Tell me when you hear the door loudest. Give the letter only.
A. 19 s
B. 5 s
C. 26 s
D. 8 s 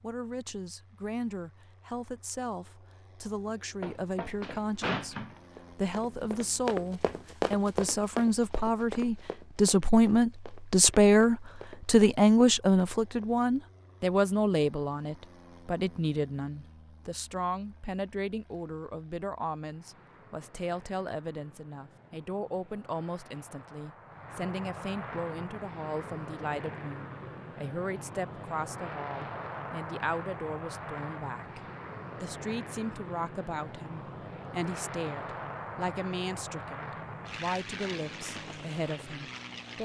B.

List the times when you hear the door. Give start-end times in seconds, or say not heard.
3.8-5.4.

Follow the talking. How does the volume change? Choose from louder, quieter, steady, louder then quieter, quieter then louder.
louder then quieter.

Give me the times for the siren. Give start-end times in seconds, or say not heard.
not heard.